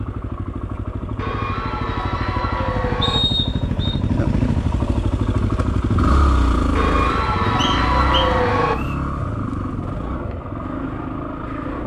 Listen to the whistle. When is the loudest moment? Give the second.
3 s.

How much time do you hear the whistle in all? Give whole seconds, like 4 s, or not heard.
2 s.